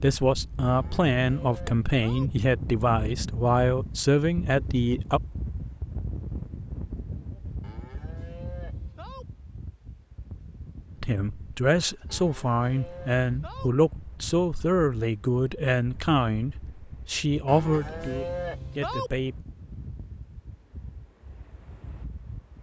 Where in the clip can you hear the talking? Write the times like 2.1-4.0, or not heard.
0.0-5.2, 11.0-19.4.